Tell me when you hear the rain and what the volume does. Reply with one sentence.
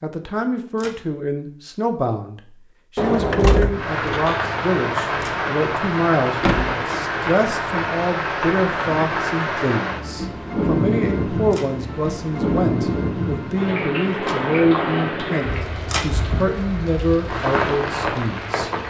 The rain can be heard from 3.6 to 18.8 s, at a steady volume.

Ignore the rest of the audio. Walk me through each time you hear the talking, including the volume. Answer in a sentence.
The talking can be heard from 0.0 to 18.7 s, at a steady volume.